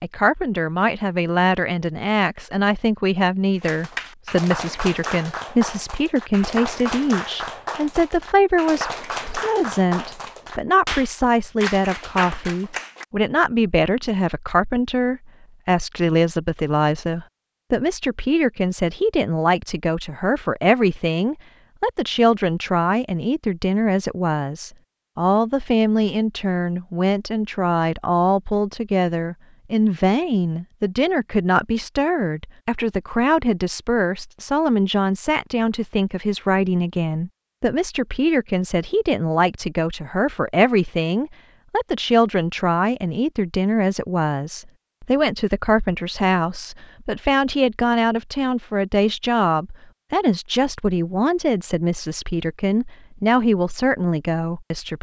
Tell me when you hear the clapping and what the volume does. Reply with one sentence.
You can hear the clapping from 3.6 to 13.1 s, at a steady volume.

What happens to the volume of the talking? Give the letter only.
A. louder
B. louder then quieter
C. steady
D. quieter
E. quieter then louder
C.